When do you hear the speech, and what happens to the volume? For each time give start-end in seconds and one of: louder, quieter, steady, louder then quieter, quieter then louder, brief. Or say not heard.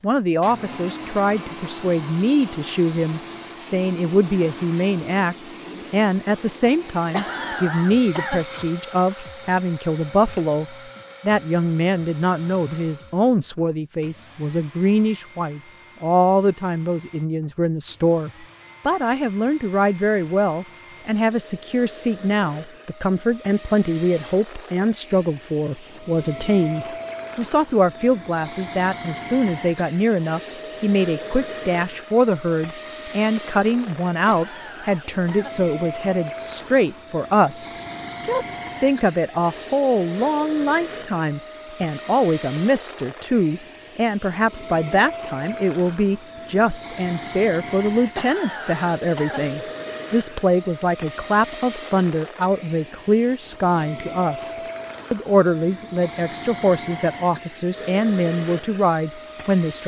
0.0-59.8 steady.